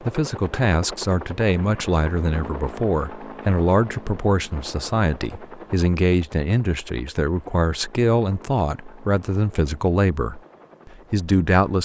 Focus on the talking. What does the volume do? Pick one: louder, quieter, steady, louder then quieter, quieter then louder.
steady.